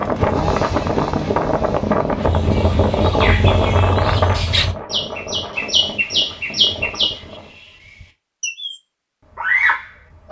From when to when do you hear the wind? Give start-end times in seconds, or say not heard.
0.0-7.5.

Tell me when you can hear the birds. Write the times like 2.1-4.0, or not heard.
2.2-10.2.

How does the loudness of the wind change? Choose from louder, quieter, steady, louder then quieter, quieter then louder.
quieter.